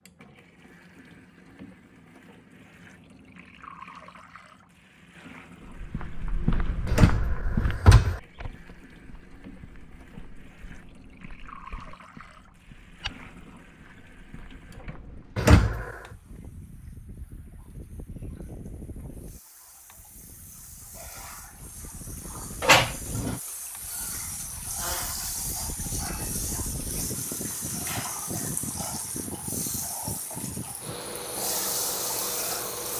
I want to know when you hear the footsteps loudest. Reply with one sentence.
The loudest moment of the footsteps is at 7 seconds.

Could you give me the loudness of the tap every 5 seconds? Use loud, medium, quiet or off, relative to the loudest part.
quiet, quiet, quiet, quiet, medium, loud, loud.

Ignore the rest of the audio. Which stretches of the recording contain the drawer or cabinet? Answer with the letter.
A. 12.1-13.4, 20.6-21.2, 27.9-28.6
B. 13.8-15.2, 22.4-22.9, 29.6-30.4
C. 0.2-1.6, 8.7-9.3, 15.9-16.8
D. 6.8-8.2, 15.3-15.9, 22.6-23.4
D.